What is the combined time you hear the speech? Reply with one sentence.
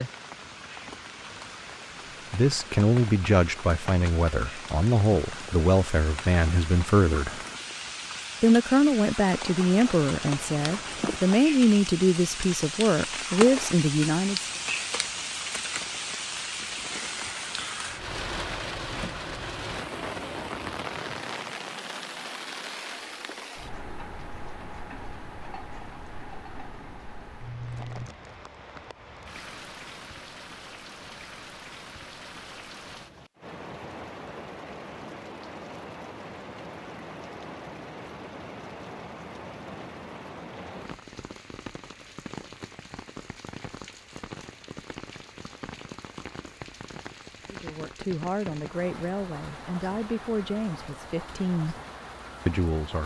You can hear the speech for 16 seconds altogether.